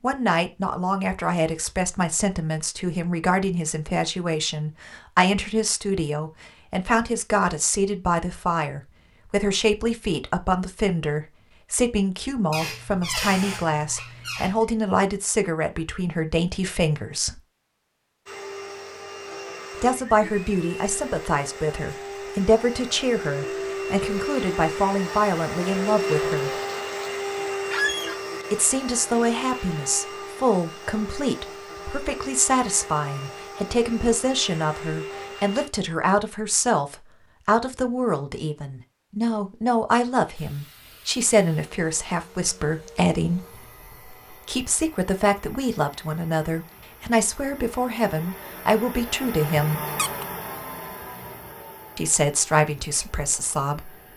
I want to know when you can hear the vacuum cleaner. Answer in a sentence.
The vacuum cleaner can be heard from 18.2 to 35.7 s and from 40.4 to 54.1 s.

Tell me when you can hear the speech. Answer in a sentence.
You can hear the speech from 0.0 to 17.4 s, from 19.8 to 26.6 s, from 28.5 to 49.8 s and from 52.0 to 54.0 s.